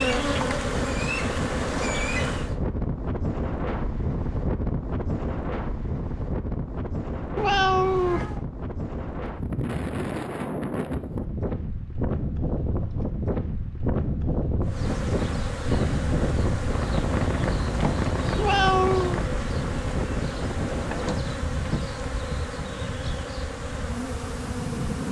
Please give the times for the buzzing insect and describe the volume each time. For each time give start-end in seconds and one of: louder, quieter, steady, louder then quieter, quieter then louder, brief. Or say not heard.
0.0-2.5 brief
14.7-25.0 steady.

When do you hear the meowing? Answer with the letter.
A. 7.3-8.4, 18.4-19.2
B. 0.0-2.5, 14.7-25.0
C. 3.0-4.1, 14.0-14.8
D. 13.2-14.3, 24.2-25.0
A.